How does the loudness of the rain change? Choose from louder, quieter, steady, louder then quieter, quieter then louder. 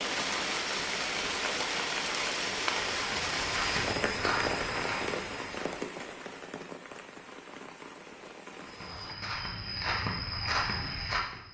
quieter.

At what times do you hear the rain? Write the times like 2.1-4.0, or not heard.
0.0-9.2.